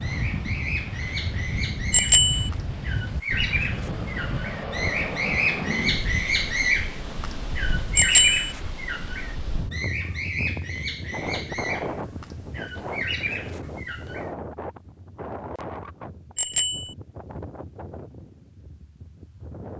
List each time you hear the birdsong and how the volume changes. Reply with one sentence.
You can hear the birdsong from 0.0 to 14.3 s, getting louder then quieter.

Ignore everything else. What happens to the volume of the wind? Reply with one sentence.
The volume of the wind goes down.